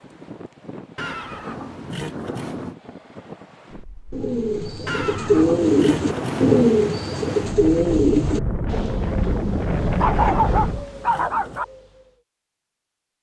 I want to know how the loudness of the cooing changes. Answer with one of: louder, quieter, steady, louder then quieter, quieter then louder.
quieter.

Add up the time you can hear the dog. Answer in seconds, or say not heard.
2 s.